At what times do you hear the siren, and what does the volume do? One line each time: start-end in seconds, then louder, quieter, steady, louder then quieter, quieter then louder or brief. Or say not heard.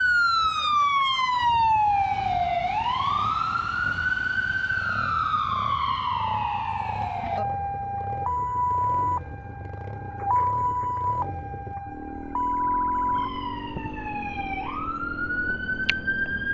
0.0-16.4 quieter.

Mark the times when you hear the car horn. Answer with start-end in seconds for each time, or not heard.
not heard.